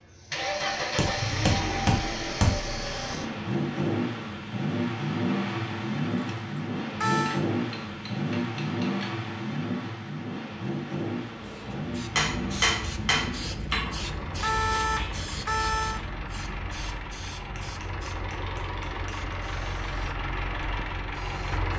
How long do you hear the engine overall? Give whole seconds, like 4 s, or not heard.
22 s.